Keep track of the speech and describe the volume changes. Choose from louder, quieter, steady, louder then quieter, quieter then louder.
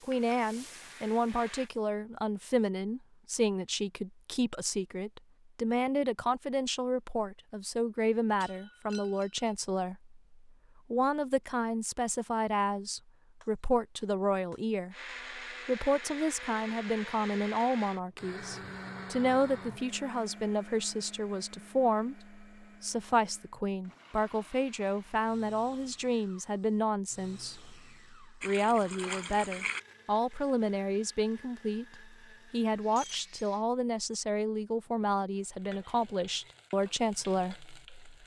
steady.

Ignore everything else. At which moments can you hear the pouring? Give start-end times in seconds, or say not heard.
28.4-29.8.